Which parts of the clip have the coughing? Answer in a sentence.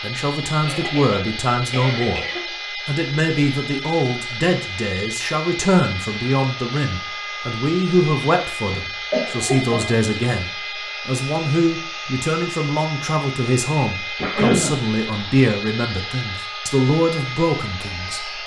The coughing can be heard from 0.6 to 2.5 s, from 8.7 to 9.9 s and from 14.2 to 14.8 s.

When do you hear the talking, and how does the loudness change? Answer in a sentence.
You can hear the talking from 0.0 to 18.4 s, at a steady volume.